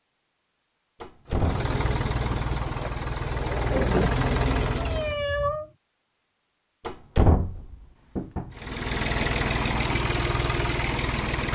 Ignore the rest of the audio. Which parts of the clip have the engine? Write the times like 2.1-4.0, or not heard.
1.3-5.2, 8.5-11.5.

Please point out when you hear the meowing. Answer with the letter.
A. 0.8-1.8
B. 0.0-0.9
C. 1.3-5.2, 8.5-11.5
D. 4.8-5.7
D.